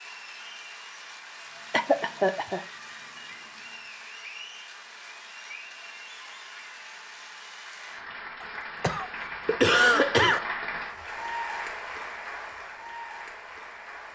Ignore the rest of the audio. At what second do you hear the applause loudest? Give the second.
10 s.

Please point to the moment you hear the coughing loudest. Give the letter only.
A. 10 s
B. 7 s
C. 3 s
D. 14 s
A.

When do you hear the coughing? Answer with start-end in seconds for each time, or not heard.
1.7-2.6, 8.4-10.4.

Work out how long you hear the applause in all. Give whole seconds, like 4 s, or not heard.
14 s.